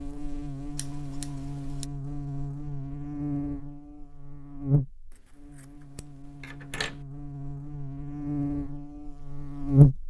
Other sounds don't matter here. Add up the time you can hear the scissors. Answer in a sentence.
You can hear the scissors for 3 seconds altogether.